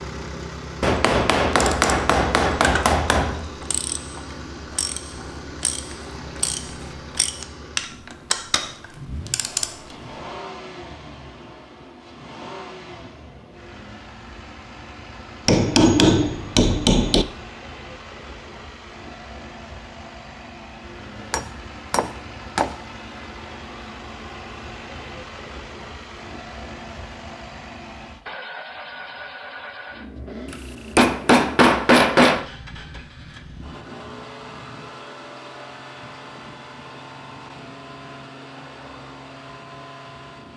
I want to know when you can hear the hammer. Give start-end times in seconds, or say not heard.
0.8-3.5, 15.4-17.2, 21.3-22.8, 30.5-32.5.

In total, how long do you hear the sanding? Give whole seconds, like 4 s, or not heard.
not heard.